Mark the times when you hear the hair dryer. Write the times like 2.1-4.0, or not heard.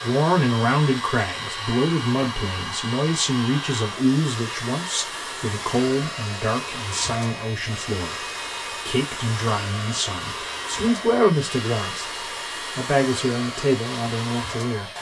0.0-14.9.